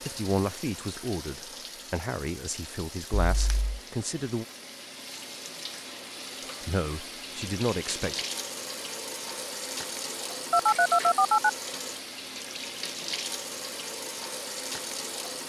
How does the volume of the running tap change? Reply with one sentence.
The loudness of the running tap goes up.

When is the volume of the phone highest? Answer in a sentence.
The loudest moment of the phone is at 11 seconds.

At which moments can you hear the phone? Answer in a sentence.
The phone can be heard from 3.2 to 3.8 s and from 10.5 to 11.5 s.